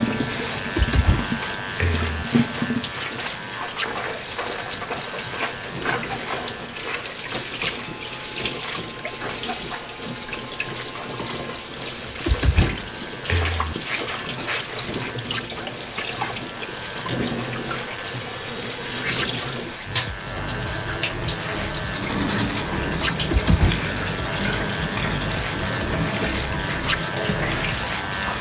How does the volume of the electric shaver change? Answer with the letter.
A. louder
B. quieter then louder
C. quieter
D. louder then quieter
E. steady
B.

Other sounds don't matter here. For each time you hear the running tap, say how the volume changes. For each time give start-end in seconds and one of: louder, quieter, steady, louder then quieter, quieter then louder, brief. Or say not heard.
0.0-28.3 steady.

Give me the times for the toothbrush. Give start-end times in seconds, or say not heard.
21.9-28.3.